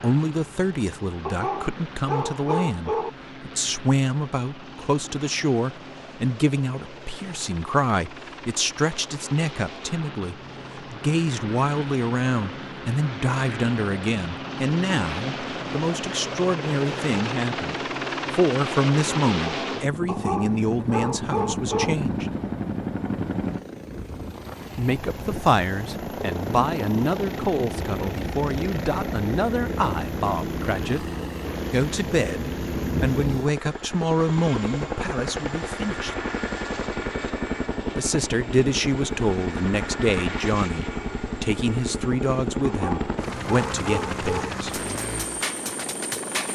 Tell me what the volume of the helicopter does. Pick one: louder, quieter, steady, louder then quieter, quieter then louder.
louder.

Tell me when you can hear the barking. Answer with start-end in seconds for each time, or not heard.
1.2-3.1, 20.1-21.9, 42.6-44.5.